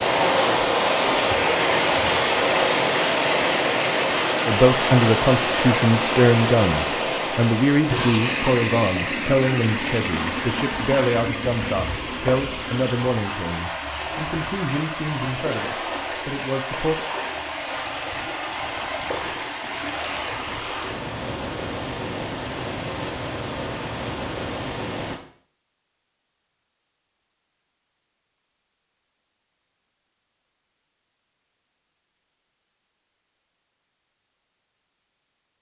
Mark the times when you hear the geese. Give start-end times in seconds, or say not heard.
not heard.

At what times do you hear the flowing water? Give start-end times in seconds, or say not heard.
0.0-25.2.